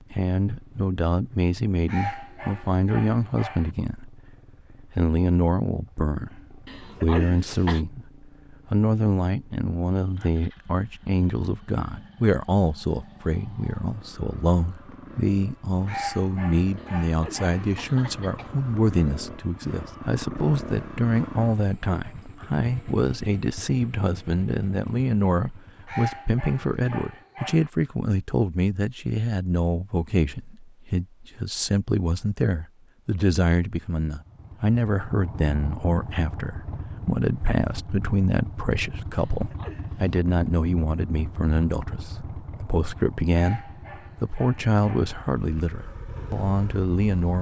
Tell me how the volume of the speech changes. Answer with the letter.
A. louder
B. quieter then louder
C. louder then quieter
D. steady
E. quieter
D.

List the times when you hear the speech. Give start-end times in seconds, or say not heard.
0.1-4.3, 4.9-47.3.